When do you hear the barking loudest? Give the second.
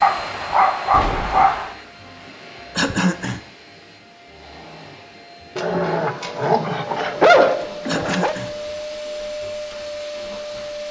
7 s.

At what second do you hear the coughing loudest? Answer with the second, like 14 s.
3 s.